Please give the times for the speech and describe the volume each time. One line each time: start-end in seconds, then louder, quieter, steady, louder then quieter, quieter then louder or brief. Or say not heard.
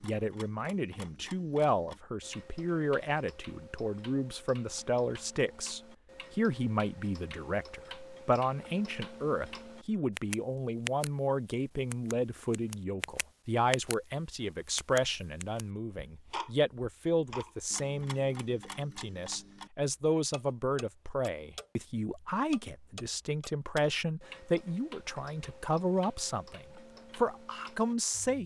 0.0-28.4 steady.